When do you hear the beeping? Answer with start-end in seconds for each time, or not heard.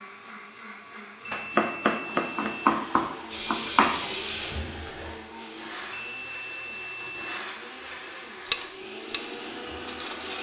1.2-2.7, 5.9-7.4.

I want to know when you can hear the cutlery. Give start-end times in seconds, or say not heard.
8.4-10.3.